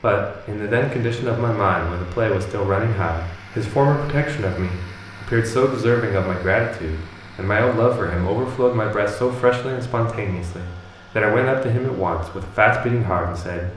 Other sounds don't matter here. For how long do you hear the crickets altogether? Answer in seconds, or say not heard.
not heard.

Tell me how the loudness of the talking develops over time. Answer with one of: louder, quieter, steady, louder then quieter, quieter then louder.
steady.